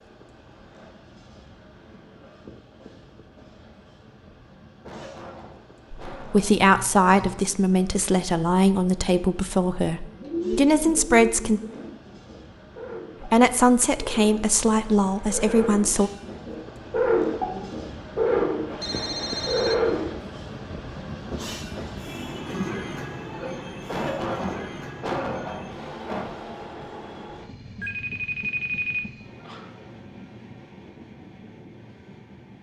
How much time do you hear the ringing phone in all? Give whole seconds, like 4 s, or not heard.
4 s.